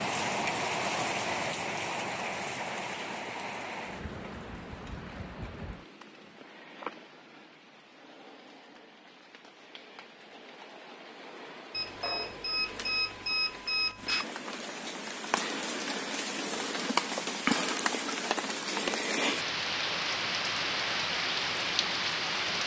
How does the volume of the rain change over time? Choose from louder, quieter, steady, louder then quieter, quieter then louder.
quieter then louder.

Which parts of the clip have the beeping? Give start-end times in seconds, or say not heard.
11.7-14.2.